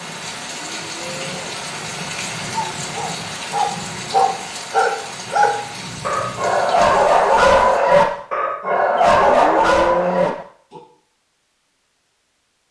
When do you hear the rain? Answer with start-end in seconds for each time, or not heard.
0.0-7.8.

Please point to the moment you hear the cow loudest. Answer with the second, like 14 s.
10 s.